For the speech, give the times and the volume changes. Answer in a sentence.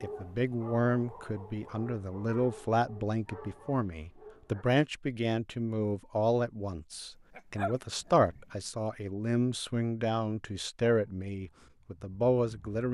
You can hear the speech from 0.0 to 12.8 s, at a steady volume.